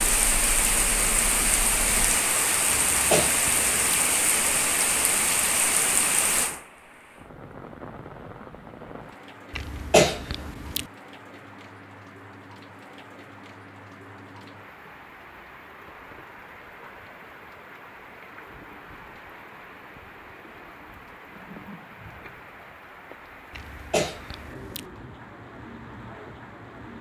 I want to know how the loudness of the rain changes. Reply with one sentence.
The loudness of the rain goes down.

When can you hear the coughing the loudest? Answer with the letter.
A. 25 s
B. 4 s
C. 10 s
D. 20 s
C.